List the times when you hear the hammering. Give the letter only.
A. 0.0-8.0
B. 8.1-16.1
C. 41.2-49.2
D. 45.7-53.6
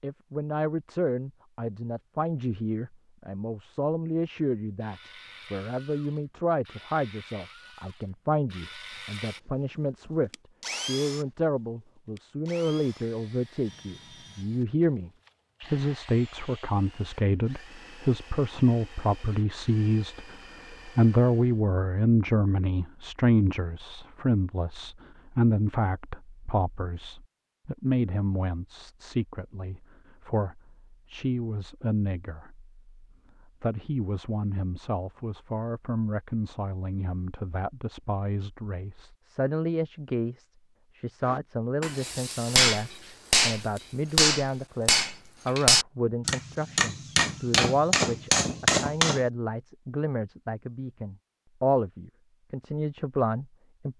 C.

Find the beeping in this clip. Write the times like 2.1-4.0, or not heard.
not heard.